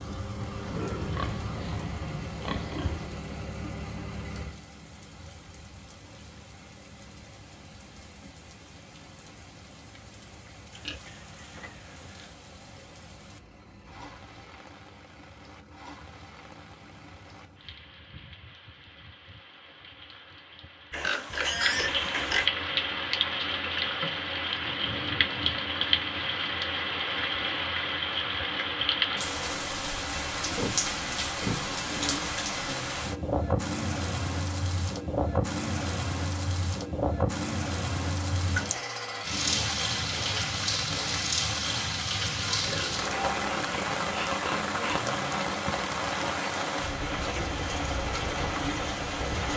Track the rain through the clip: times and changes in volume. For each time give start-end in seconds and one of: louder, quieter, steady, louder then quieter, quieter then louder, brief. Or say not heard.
0.0-49.5 louder.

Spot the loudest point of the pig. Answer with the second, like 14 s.
22 s.